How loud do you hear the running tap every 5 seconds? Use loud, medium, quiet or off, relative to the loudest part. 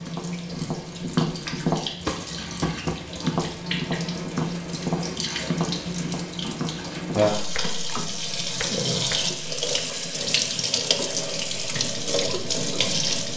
medium, loud, loud.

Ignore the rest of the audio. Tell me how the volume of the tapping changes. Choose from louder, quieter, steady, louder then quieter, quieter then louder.
quieter.